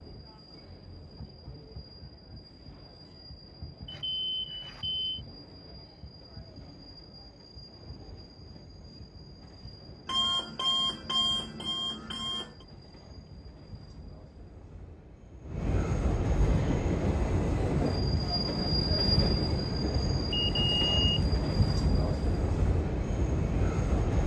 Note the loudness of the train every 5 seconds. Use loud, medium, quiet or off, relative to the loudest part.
quiet, quiet, quiet, loud, loud.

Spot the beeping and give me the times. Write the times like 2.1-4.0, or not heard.
3.9-5.1, 10.1-12.5, 20.3-21.2.